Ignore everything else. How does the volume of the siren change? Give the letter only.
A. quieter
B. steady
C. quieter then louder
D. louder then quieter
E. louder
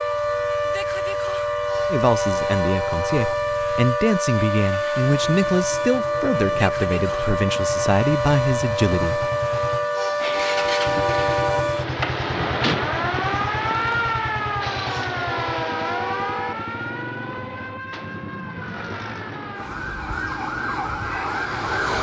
A.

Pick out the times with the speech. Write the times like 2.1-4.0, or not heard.
1.9-9.3.